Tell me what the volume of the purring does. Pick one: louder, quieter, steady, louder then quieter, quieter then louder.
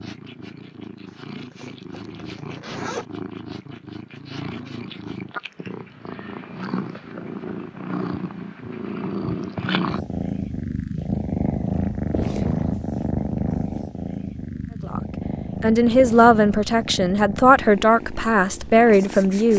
louder then quieter.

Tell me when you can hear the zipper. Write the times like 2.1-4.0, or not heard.
1.1-3.0.